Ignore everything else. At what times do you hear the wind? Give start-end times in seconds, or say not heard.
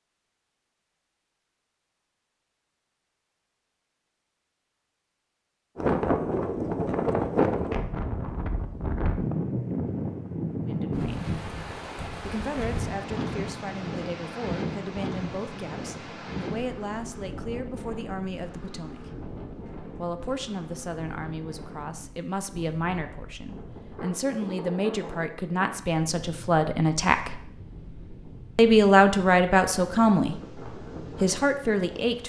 5.8-32.2.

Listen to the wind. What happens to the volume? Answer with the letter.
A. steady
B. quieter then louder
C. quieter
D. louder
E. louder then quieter
C.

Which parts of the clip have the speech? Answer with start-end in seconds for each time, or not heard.
10.7-11.3, 12.2-19.1, 19.9-27.4, 28.6-32.2.